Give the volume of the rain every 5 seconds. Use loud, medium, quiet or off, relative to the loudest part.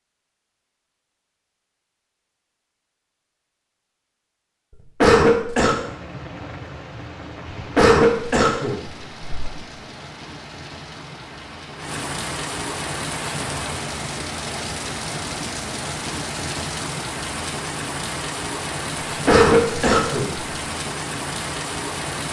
off, medium, loud, loud, loud.